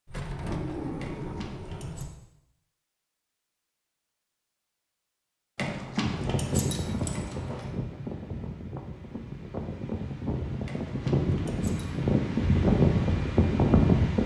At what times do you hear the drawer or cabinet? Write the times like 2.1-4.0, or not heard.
0.1-2.0.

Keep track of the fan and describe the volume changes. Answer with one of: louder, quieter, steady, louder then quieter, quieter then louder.
quieter then louder.